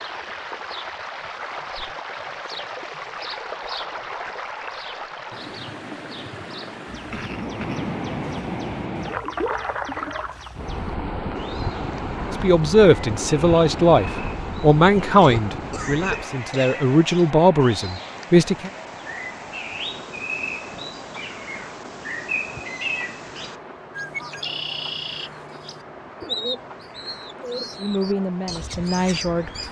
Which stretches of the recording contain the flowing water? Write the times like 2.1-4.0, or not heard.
0.0-29.6.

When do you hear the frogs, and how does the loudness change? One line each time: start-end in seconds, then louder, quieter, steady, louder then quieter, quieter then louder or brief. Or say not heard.
not heard.